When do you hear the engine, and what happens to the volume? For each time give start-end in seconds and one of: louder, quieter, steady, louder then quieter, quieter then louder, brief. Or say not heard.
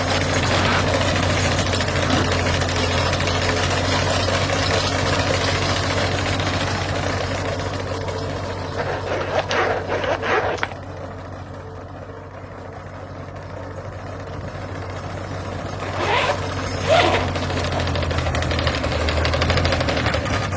0.0-20.5 quieter then louder.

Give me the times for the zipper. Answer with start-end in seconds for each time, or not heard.
0.3-2.2, 8.8-10.8, 15.8-17.8.